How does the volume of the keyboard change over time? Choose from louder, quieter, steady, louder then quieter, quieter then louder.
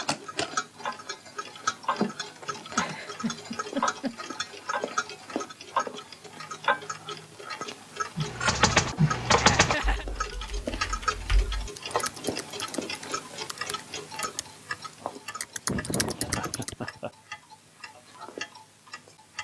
quieter then louder.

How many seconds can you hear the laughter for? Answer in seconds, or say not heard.
4 s.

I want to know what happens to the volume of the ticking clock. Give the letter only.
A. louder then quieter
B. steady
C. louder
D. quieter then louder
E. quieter
E.